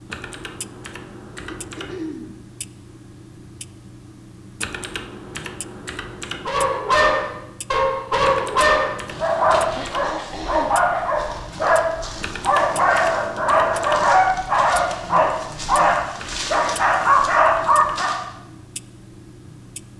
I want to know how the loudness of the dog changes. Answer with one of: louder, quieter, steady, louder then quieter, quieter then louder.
steady.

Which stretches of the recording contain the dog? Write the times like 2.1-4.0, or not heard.
6.5-18.1.